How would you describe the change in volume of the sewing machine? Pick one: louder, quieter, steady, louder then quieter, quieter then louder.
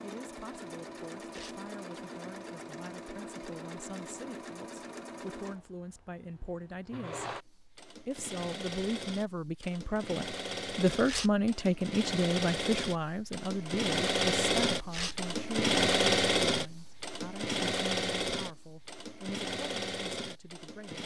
louder then quieter.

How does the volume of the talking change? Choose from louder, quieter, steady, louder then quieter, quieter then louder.
louder then quieter.